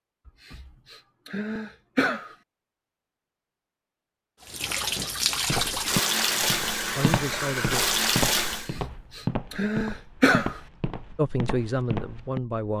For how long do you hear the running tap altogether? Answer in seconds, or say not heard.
4 s.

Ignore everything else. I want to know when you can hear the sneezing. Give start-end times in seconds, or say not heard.
0.2-2.4, 8.5-10.6.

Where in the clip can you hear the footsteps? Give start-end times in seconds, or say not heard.
5.5-12.4.